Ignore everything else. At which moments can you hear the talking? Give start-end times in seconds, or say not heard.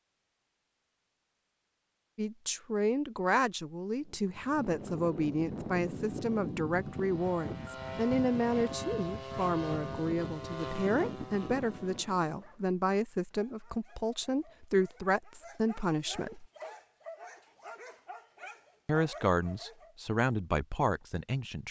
2.1-16.4, 18.9-21.6.